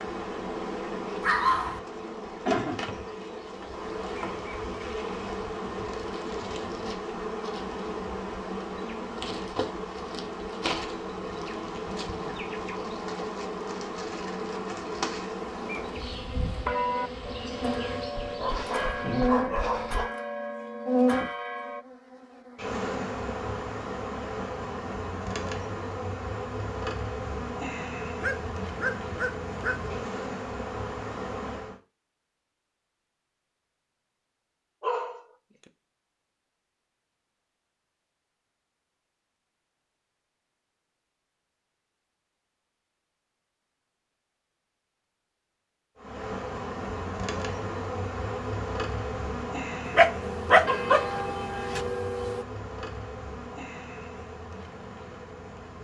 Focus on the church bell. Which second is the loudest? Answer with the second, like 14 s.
17 s.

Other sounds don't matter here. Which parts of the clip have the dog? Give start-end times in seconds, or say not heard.
1.2-1.8, 18.1-20.1, 28.2-29.9, 34.8-35.2, 50.0-51.0.